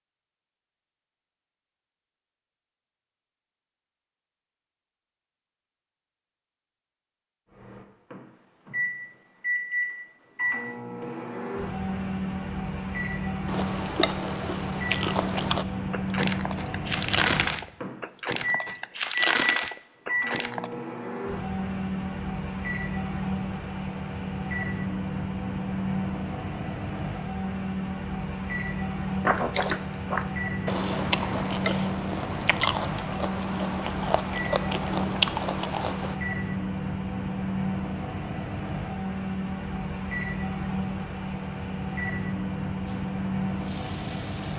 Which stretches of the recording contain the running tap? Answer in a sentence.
The running tap can be heard from 42.9 to 44.5 s.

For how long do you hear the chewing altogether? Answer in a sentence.
The chewing can be heard for 14 seconds in total.